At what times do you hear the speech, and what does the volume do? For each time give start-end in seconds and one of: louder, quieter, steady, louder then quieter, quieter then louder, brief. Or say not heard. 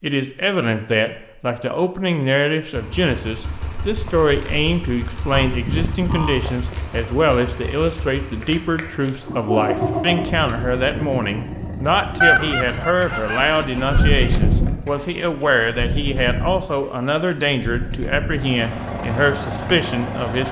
0.0-20.4 steady.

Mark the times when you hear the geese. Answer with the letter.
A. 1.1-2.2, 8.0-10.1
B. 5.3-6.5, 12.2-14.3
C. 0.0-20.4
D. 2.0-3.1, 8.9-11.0
B.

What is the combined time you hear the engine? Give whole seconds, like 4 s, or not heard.
18 s.